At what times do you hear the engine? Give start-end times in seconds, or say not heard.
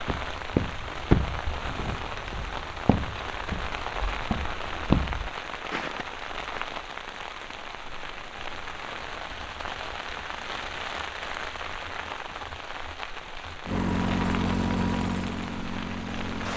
13.7-16.5.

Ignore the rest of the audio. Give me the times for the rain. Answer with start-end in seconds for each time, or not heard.
0.0-16.5.